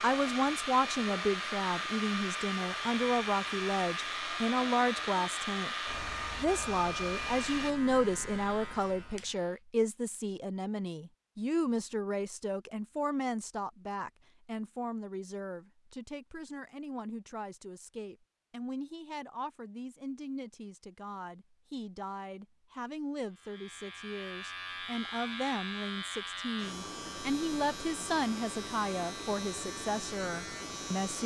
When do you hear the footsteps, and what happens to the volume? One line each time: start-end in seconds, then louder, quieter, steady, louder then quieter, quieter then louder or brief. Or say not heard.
not heard.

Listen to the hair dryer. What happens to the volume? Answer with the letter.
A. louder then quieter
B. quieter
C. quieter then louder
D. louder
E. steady
E.